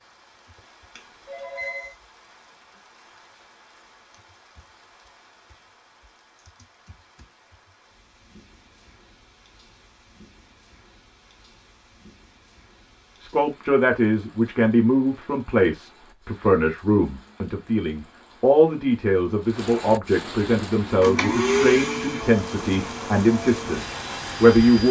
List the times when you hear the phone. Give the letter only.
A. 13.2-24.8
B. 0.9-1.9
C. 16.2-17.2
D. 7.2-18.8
B.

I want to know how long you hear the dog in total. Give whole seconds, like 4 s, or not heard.
not heard.